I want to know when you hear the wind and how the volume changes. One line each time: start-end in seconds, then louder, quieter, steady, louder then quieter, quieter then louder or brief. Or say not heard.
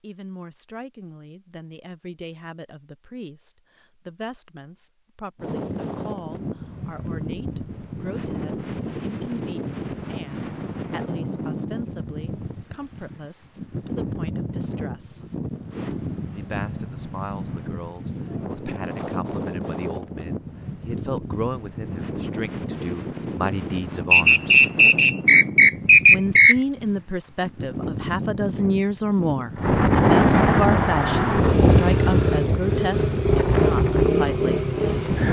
5.3-35.2 louder.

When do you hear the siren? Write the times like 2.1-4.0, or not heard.
not heard.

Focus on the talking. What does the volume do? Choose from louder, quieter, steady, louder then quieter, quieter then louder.
louder.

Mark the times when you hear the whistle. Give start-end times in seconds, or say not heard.
24.1-26.6.